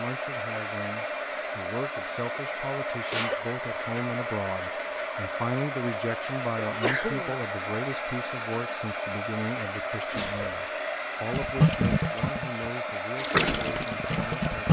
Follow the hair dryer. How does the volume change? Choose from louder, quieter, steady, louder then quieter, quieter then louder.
steady.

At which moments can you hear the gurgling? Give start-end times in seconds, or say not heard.
11.3-14.6.